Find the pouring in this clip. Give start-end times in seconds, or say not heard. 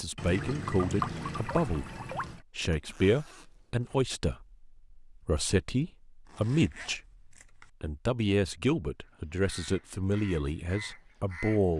0.1-2.4.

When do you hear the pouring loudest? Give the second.
1 s.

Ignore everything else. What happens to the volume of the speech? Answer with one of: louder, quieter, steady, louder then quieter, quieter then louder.
steady.